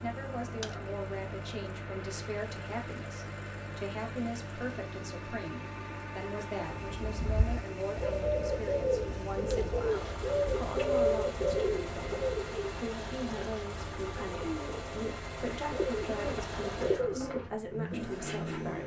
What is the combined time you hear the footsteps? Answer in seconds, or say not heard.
not heard.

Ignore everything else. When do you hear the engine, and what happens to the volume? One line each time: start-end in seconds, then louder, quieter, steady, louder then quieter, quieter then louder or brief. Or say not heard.
0.0-18.8 steady.